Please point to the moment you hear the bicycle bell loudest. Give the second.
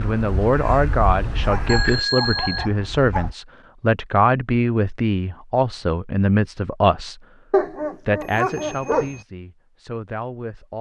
2 s.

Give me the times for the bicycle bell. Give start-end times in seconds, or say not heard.
1.6-2.6, 8.2-9.2.